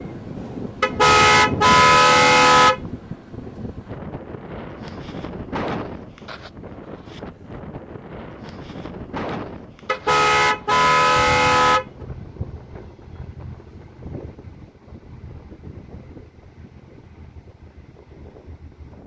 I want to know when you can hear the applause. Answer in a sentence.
The applause can't be heard in this clip.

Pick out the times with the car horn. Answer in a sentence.
You can hear the car horn from 0.8 to 2.8 s and from 9.8 to 11.8 s.